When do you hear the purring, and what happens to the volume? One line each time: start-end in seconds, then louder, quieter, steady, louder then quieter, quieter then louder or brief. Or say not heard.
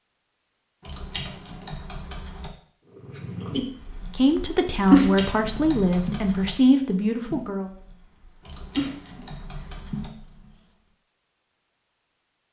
3.0-10.6 louder then quieter.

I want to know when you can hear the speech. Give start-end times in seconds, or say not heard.
4.2-7.7.